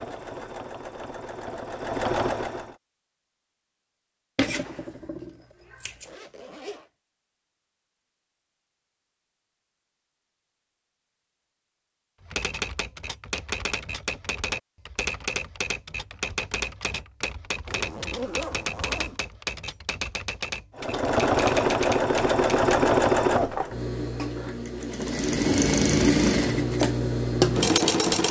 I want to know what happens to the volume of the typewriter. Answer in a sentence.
The loudness of the typewriter stays about the same.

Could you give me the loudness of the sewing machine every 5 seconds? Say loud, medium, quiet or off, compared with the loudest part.
medium, off, off, off, loud, loud.